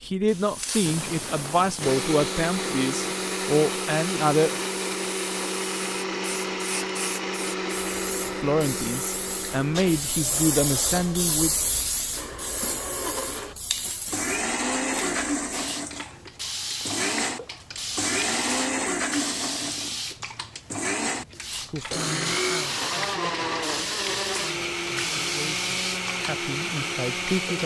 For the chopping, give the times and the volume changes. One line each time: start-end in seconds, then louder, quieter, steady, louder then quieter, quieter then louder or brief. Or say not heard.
not heard.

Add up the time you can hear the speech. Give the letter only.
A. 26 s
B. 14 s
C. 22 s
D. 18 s
B.